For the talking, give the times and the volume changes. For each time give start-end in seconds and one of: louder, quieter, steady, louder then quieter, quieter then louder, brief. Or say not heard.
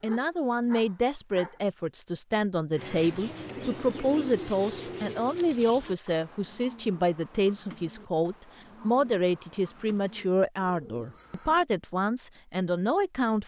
0.0-13.4 steady.